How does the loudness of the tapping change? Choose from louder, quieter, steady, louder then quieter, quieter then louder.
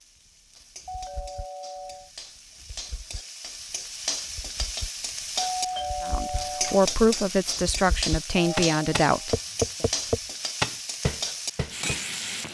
louder.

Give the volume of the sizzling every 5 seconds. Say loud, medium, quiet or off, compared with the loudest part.
medium, loud, loud.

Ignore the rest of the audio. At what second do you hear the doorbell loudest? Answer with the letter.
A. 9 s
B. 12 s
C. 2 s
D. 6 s
D.